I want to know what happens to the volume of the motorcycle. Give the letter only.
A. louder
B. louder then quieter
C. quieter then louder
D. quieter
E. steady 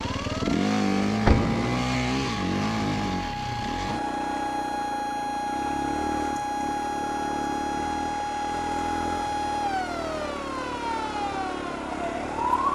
D.